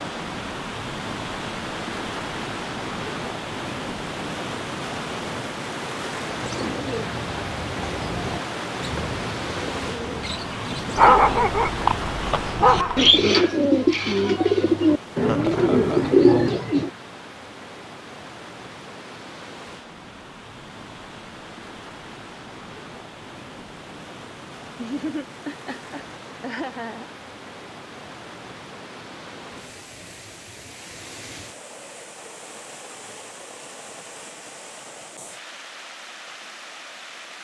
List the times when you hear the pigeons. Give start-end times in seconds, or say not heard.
6.4-16.9.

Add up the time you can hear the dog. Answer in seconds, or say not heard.
2 s.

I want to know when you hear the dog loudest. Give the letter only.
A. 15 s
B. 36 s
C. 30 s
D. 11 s
D.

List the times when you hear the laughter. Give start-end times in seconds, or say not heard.
15.2-16.1, 24.8-27.1.